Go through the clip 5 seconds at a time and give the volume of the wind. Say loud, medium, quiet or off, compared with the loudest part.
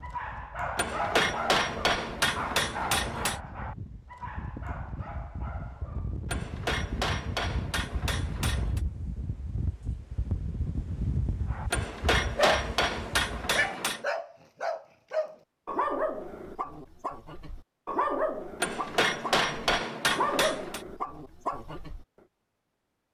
medium, loud, loud, off, off.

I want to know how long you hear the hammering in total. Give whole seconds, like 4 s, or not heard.
10 s.